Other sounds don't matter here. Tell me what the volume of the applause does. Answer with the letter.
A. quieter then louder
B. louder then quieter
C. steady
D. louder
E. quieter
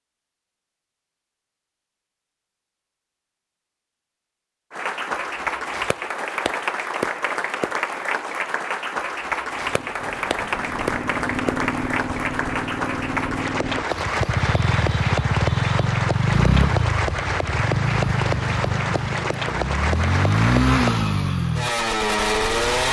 C.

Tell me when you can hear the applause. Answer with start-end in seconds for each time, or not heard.
4.7-21.0.